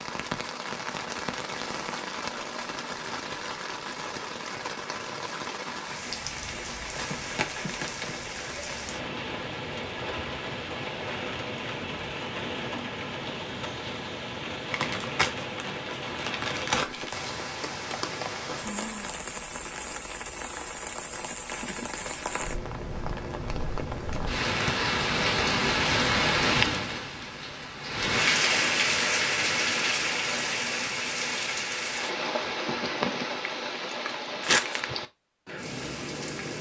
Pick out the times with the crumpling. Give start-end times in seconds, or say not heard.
7.1-8.3, 14.7-17.5, 34.4-34.9.